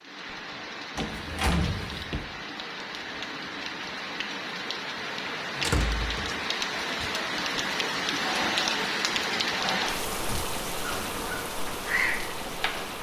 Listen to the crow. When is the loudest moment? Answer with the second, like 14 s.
12 s.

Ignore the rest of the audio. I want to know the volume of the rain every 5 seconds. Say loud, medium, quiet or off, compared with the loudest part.
medium, loud, medium.